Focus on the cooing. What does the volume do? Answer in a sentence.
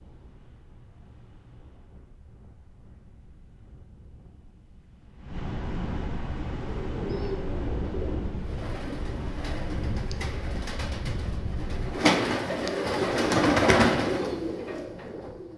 The loudness of the cooing goes up.